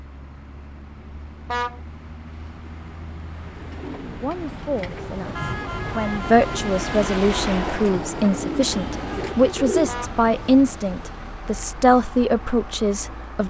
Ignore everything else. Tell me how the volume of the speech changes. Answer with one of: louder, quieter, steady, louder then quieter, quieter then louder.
louder.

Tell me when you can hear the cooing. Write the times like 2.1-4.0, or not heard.
3.5-9.9.